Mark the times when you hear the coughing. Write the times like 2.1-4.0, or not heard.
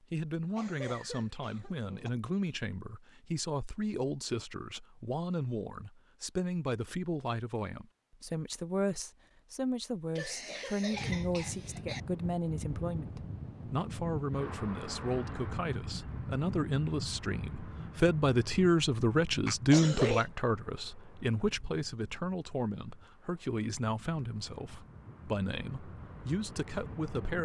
0.6-2.1, 10.2-12.0, 19.4-20.2.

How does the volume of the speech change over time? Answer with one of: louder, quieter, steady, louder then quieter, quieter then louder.
louder then quieter.